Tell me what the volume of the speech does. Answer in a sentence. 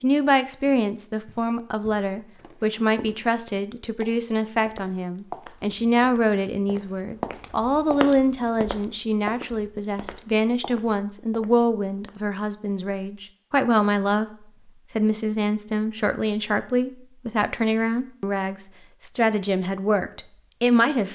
The volume of the speech stays about the same.